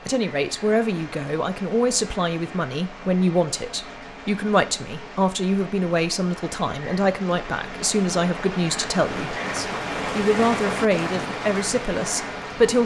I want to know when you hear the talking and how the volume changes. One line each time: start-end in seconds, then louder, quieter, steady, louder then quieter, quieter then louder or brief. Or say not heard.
0.1-12.8 steady.